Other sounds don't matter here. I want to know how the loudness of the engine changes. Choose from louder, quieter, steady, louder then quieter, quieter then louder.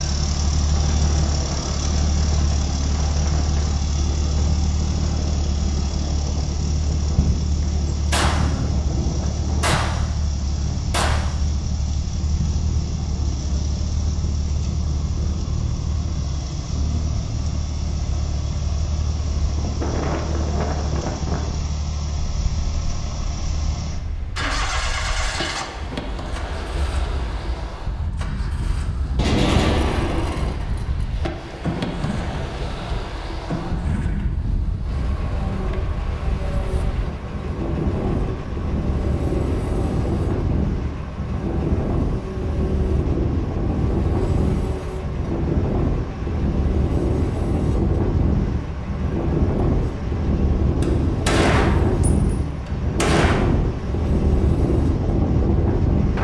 quieter.